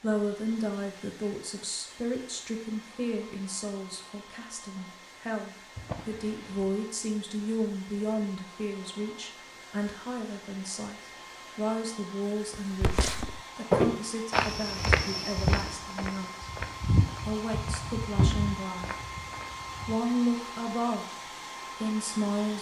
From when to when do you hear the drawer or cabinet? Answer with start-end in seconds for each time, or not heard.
5.8-6.8, 18.1-18.6.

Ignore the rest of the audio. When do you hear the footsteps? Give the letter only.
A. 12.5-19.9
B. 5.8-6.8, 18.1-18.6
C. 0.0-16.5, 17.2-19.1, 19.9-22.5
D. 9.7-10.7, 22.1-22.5
A.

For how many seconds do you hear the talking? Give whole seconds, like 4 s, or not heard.
21 s.